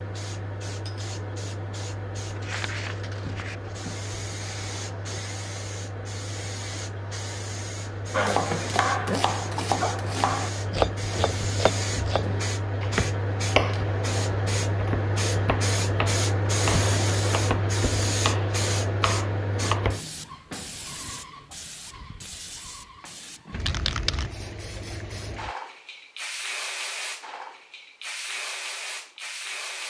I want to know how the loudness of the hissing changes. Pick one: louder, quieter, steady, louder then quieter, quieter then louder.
louder then quieter.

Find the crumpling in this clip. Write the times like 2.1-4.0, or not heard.
2.2-3.7.